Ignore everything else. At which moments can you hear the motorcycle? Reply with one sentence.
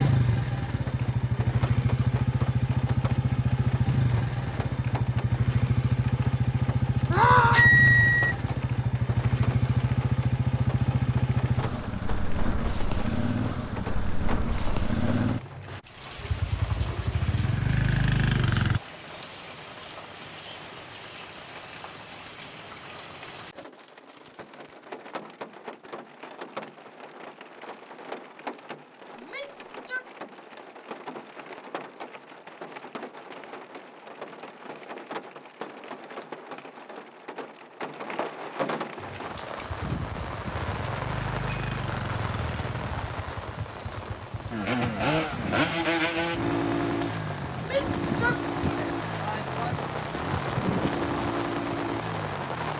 You can hear the motorcycle from 0.0 to 18.8 s and from 39.0 to 52.7 s.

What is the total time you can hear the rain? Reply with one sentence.
The rain can be heard for 53 seconds in total.